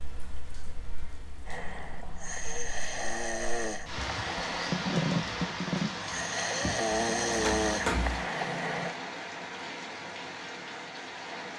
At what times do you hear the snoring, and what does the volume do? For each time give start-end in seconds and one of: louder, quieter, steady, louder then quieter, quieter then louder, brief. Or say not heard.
1.4-8.9 louder.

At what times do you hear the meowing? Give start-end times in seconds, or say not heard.
6.9-8.3.